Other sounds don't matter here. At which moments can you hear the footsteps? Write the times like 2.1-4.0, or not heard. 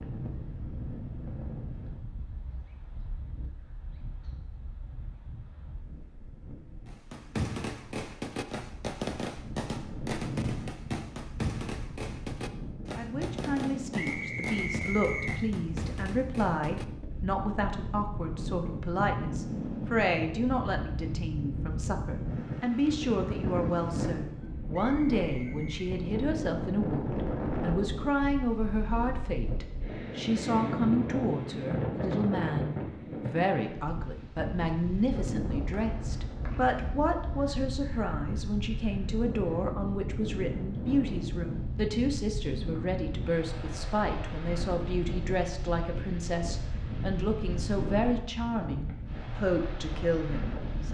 not heard.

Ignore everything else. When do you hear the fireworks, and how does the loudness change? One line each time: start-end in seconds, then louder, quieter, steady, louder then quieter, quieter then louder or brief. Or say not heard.
6.8-16.9 quieter.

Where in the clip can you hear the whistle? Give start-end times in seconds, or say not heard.
13.9-15.4, 24.7-25.9, 35.7-36.8.